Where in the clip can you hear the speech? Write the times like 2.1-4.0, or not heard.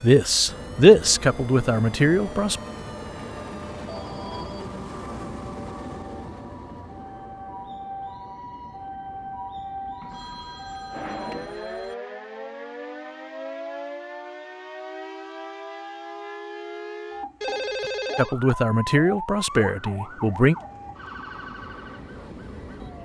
0.0-2.6, 18.1-20.6.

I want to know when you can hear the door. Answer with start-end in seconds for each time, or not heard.
not heard.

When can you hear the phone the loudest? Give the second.
18 s.